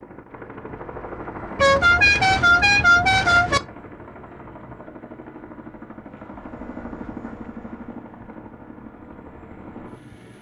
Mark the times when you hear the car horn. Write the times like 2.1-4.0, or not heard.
1.6-3.6.